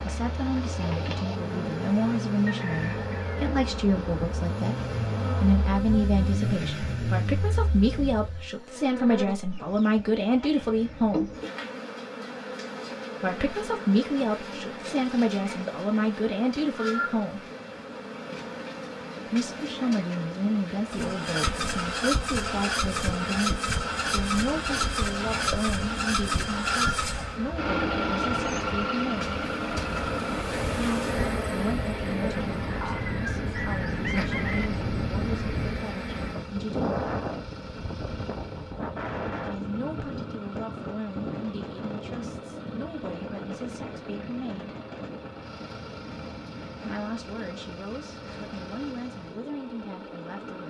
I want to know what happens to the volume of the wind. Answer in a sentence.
The volume of the wind goes up, then down.